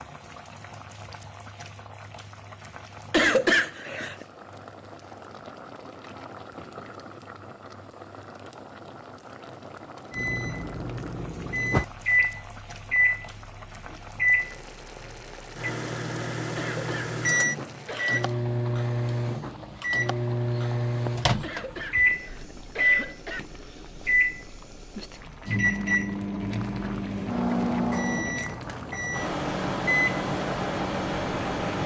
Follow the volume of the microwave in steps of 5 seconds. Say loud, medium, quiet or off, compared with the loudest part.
off, off, loud, loud, loud, loud, loud.